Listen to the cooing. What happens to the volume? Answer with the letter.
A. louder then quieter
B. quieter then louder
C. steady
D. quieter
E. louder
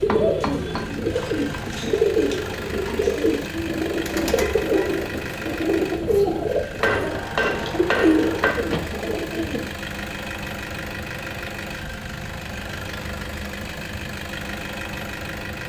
C.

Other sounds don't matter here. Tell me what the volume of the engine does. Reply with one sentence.
The volume of the engine stays about the same.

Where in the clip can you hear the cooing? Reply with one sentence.
You can hear the cooing from 0.0 to 9.7 s.